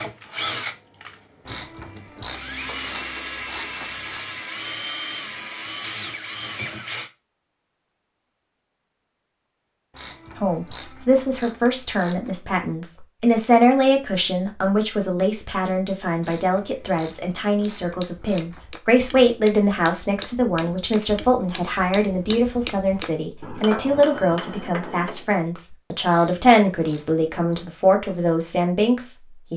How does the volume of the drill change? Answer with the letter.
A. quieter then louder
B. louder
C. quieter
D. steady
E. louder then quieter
D.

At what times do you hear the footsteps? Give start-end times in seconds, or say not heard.
not heard.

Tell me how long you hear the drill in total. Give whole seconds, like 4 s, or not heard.
7 s.